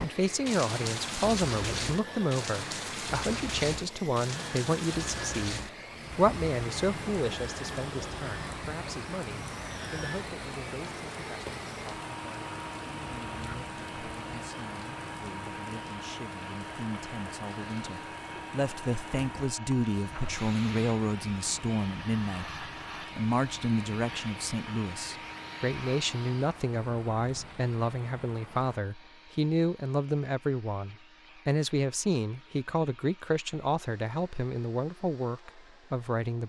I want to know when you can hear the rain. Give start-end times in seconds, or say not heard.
0.0-28.8.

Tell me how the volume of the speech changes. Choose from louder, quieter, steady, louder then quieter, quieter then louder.
quieter then louder.